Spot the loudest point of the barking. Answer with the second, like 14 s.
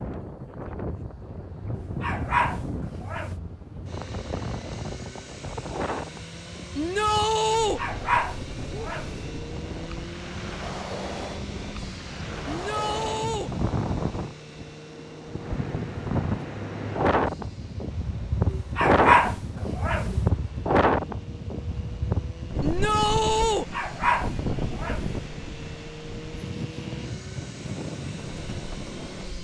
19 s.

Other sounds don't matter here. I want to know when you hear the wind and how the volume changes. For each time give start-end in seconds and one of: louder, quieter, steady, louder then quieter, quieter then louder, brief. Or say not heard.
0.0-29.3 louder then quieter.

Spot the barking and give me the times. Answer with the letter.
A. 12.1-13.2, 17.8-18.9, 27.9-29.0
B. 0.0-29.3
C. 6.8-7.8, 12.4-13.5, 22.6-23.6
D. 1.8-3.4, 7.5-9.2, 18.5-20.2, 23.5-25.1
D.